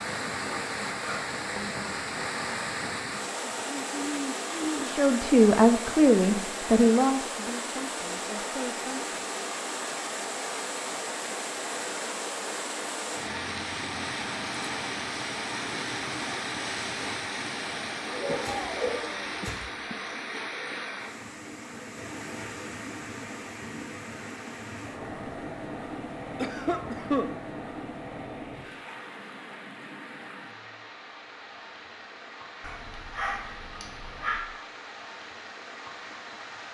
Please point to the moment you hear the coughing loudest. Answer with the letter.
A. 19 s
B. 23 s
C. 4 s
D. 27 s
D.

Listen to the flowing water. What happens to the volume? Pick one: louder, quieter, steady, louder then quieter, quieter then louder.
quieter.